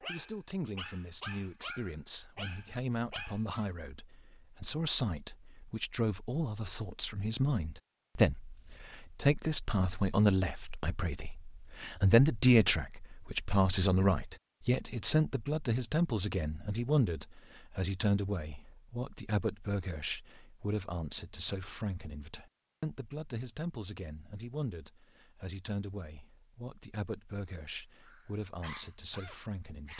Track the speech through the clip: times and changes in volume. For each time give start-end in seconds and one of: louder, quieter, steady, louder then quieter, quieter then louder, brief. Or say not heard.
0.0-29.9 louder then quieter.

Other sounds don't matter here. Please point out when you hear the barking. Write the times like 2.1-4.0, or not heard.
0.0-3.7, 28.0-29.9.